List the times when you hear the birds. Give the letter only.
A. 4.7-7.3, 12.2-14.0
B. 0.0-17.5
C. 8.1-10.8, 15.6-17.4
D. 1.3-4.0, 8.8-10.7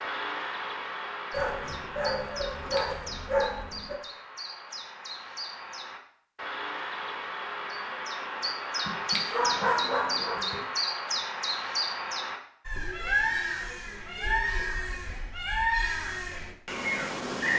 B.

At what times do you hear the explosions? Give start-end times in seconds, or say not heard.
not heard.